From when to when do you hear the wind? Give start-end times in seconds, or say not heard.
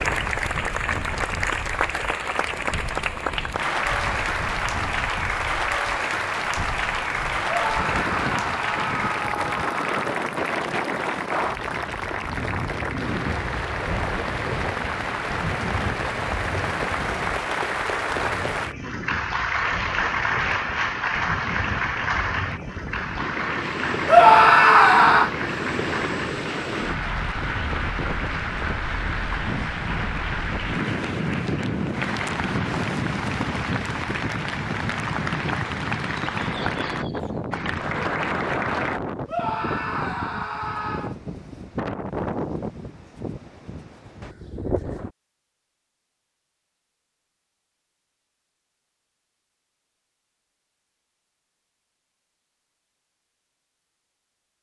0.0-45.1.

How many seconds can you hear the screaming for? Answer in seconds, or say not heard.
6 s.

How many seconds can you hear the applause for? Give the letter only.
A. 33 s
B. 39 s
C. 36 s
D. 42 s
B.